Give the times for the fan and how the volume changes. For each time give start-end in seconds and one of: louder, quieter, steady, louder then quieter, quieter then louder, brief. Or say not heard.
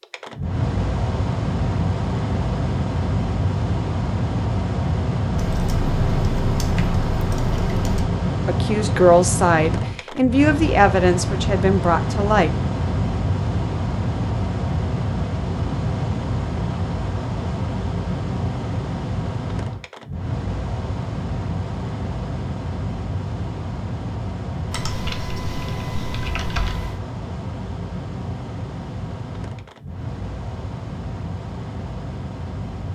0.0-32.9 quieter.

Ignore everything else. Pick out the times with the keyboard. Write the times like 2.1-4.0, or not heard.
5.3-8.1, 24.7-27.0.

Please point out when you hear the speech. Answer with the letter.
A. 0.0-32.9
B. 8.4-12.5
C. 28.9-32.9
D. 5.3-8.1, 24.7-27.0
B.